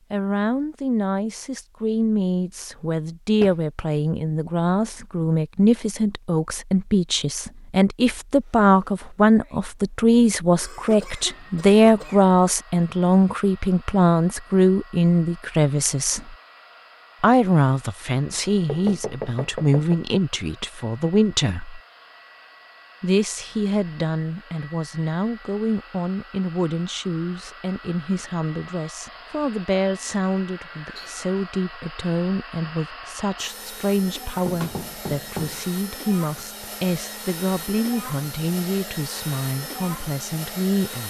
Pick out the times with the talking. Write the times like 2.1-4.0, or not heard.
0.1-16.4, 17.2-21.8, 23.0-41.0.